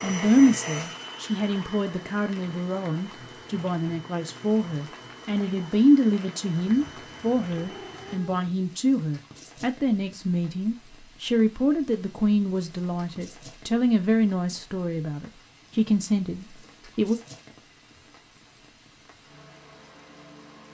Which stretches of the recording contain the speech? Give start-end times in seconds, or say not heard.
0.0-17.1.